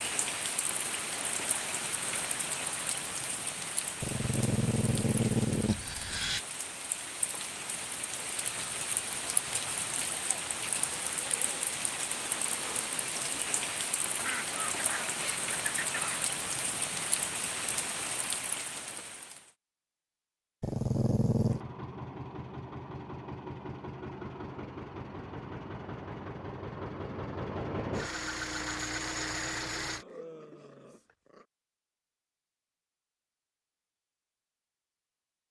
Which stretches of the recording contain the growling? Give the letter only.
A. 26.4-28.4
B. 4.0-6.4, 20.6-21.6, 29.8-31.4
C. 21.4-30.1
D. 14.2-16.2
B.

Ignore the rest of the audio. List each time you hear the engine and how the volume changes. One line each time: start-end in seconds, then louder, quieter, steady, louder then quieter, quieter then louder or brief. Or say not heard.
21.4-30.1 louder.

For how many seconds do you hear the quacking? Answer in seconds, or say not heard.
2 s.